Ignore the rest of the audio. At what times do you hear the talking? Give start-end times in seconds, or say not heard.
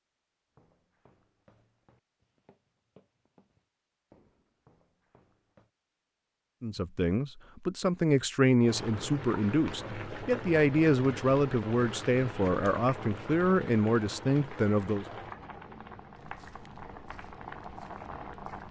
6.6-15.1.